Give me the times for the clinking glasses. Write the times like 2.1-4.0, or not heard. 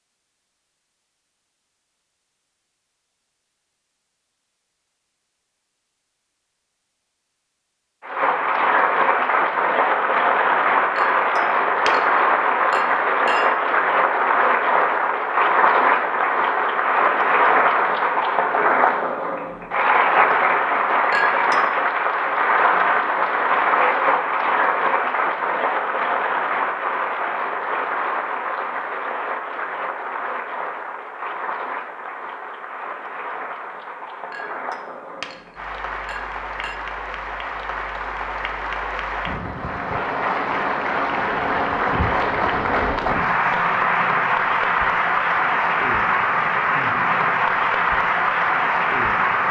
10.9-12.1, 12.7-13.5, 21.1-21.6, 34.3-35.4, 36.0-36.8.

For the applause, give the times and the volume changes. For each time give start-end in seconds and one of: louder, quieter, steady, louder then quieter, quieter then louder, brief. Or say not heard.
8.0-49.4 quieter then louder.